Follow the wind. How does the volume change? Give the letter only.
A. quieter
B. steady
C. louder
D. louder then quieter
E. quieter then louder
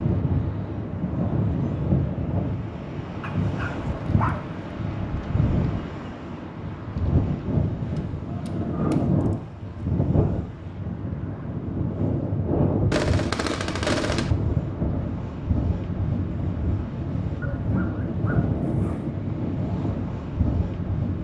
B.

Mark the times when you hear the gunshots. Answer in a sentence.
The gunshots can be heard from 12.9 to 14.3 s.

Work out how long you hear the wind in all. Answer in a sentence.
The wind can be heard for 21 seconds in total.